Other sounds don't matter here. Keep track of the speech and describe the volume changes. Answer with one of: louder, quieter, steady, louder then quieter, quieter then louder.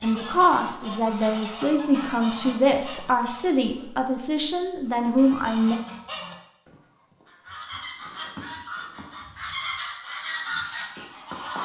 steady.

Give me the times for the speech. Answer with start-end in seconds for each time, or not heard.
0.0-5.8.